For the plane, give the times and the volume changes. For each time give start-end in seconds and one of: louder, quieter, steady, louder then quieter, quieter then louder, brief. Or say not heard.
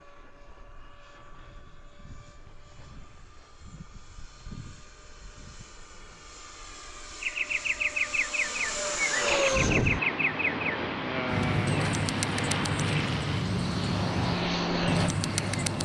0.1-15.8 louder.